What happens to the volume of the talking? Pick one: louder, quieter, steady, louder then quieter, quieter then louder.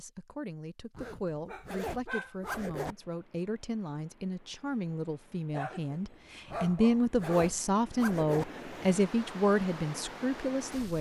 louder.